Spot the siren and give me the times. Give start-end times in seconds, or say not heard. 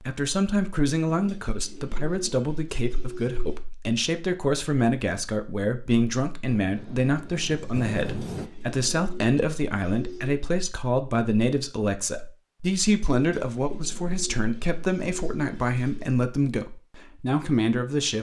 not heard.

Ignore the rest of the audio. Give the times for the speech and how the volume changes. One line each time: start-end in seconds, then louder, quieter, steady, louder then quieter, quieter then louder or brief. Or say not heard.
0.0-18.1 steady.